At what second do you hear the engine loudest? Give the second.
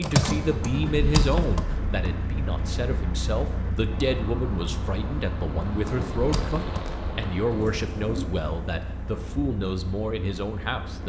1 s.